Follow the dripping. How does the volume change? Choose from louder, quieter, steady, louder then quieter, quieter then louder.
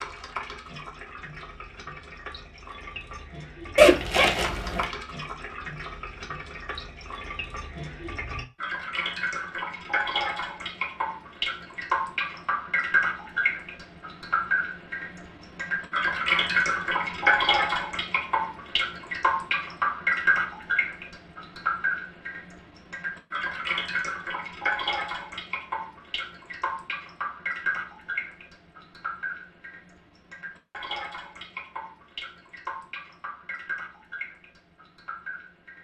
louder then quieter.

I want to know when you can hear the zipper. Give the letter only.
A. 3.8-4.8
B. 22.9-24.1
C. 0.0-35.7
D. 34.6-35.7
A.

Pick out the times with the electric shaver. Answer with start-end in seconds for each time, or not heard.
not heard.